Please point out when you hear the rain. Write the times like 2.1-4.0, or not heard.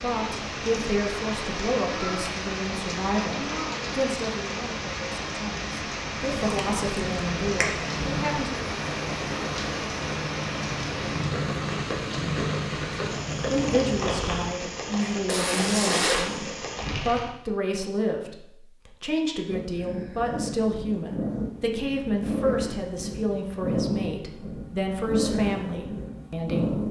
0.0-17.3.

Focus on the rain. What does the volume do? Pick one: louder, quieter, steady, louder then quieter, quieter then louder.
steady.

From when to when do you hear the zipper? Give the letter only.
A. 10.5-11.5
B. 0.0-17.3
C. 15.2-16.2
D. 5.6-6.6
C.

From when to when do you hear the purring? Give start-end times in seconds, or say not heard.
6.2-14.6, 19.4-26.8.